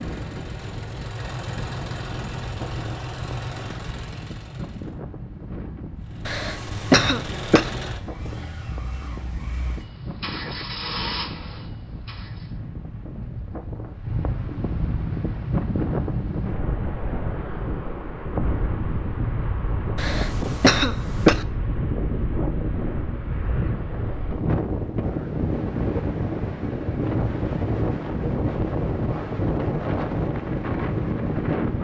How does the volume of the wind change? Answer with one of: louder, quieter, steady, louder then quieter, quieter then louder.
louder.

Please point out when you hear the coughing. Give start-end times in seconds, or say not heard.
6.2-7.7, 19.9-21.4.